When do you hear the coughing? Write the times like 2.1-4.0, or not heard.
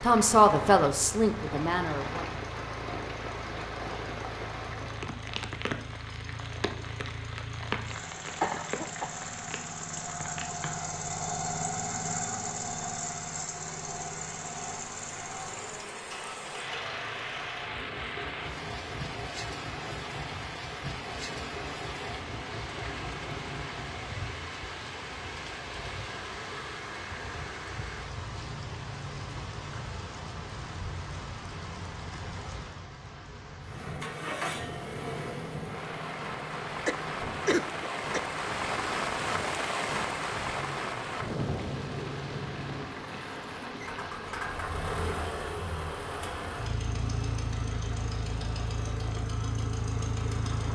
8.4-9.7, 36.5-38.2.